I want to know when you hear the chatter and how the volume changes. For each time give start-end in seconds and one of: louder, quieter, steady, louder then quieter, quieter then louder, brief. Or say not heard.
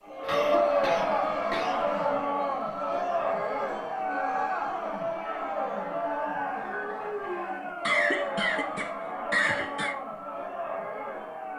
0.1-11.5 quieter.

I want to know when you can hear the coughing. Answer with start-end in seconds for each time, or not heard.
0.2-1.9, 7.2-9.9.